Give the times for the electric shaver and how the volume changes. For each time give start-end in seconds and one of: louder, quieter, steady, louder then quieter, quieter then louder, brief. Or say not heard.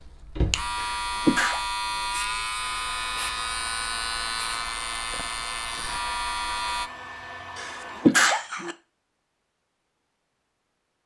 0.0-6.9 steady.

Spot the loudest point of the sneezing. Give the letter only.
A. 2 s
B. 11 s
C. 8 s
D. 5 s
C.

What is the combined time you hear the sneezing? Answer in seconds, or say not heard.
2 s.